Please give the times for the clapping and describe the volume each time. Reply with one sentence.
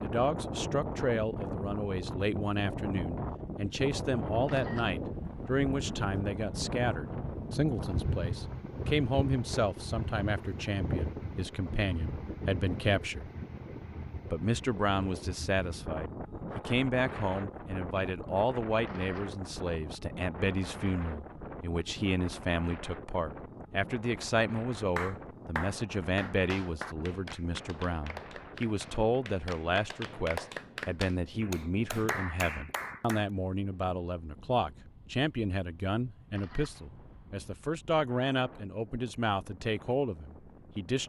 The clapping can be heard from 24.9 to 33.2 s, getting quieter then louder.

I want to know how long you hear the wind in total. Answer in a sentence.
The wind can be heard for 41 seconds in total.